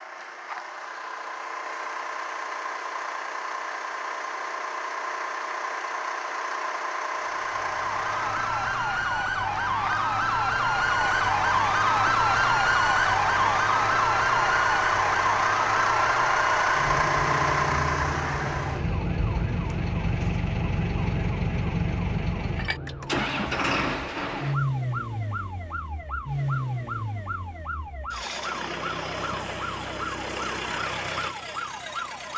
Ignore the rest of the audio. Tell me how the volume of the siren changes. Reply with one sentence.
The volume of the siren goes down.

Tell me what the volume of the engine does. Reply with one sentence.
The loudness of the engine goes up, then down.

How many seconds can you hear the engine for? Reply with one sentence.
You can hear the engine for 32 seconds altogether.